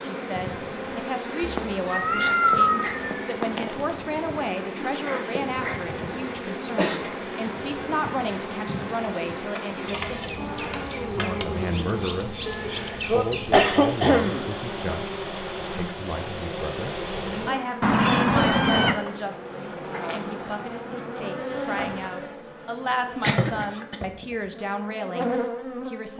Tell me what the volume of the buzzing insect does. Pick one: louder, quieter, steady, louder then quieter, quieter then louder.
steady.